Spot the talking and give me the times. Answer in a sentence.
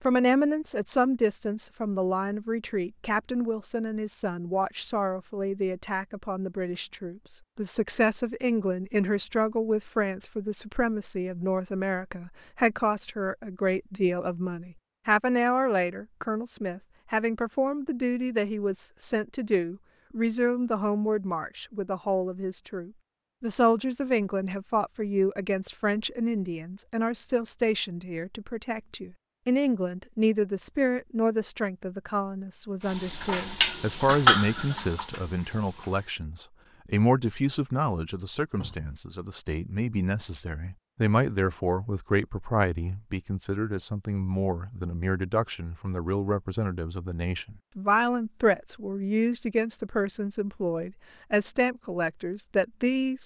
The talking can be heard from 0.0 to 53.2 s.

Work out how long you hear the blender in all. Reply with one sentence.
You can't hear the blender here.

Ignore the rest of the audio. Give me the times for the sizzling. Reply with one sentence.
You can hear the sizzling from 32.8 to 36.0 s.